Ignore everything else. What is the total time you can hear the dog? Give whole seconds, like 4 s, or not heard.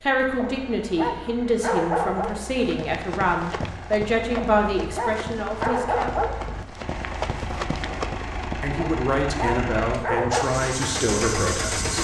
6 s.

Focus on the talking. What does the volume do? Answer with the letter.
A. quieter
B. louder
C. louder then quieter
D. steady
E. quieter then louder
D.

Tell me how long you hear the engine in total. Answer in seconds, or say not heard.
12 s.